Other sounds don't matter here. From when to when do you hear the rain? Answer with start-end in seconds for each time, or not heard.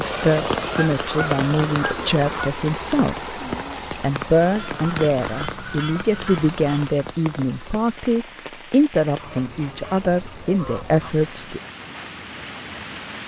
0.0-13.2.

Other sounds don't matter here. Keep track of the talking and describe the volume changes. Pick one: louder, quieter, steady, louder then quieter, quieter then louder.
steady.